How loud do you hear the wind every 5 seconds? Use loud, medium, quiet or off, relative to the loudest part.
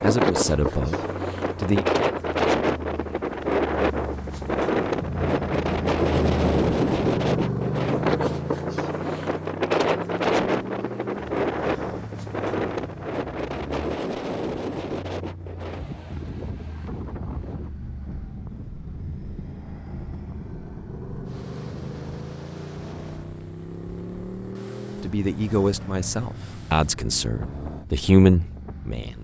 loud, loud, loud, quiet, quiet, quiet.